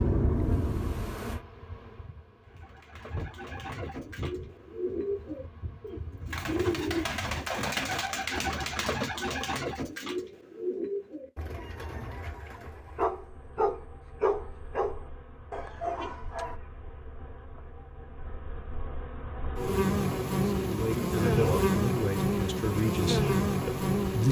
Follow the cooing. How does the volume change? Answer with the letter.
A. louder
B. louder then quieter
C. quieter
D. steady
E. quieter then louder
B.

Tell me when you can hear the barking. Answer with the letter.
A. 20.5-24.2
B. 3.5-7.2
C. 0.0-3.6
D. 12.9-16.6
D.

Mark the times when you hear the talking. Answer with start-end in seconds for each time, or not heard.
20.5-24.2.